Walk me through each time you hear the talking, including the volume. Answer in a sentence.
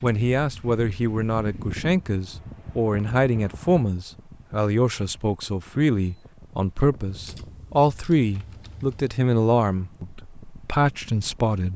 The talking can be heard from 0.0 to 11.7 s, at a steady volume.